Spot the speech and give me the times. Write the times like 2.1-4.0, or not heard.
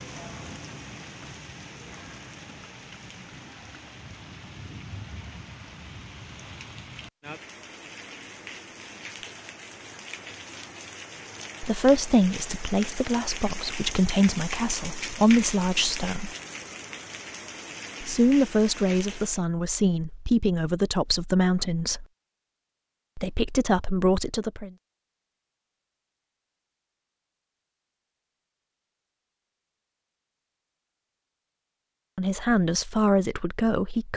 11.6-16.3, 18.0-22.1, 23.1-24.7, 32.1-34.1.